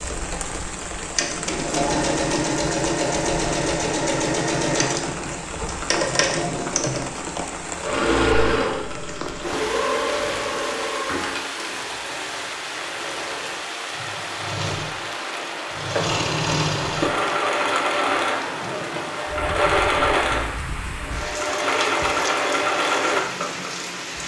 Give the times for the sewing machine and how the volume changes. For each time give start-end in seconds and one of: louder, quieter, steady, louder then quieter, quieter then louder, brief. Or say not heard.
0.0-24.2 quieter then louder.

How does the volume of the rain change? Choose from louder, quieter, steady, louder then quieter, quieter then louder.
steady.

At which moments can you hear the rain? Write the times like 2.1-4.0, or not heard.
0.0-24.2.